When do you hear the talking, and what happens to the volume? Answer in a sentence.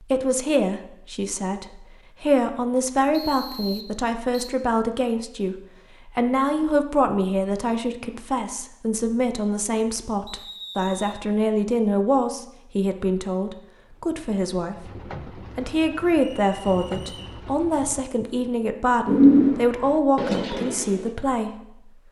You can hear the talking from 0.0 to 22.0 s, at a steady volume.